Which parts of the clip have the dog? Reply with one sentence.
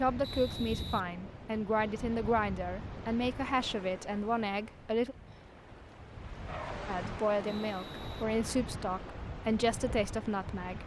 You can hear the dog from 5.3 to 6.9 s.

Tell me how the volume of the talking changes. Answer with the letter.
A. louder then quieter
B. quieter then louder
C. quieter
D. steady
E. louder
D.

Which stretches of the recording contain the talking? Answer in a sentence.
The talking can be heard from 0.0 to 5.2 s and from 6.8 to 10.8 s.